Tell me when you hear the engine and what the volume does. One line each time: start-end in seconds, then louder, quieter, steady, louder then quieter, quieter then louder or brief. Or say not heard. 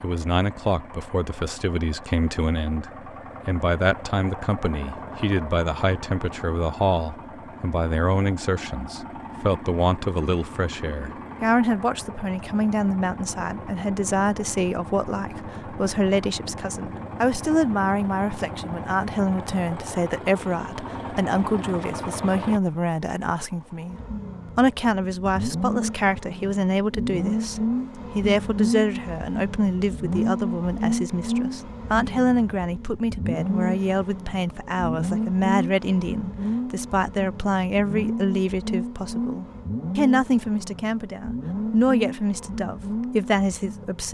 0.0-44.1 louder.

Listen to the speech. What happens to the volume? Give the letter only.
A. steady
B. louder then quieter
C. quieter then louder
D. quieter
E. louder
A.